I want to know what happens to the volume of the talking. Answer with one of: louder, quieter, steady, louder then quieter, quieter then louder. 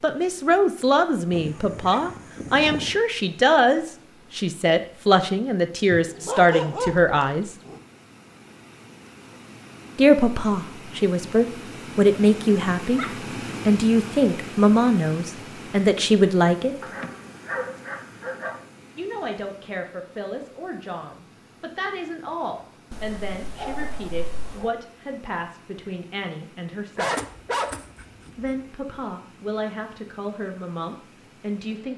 quieter.